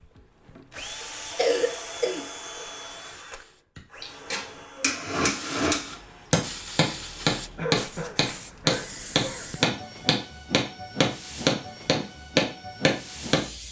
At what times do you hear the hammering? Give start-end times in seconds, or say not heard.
3.8-13.4.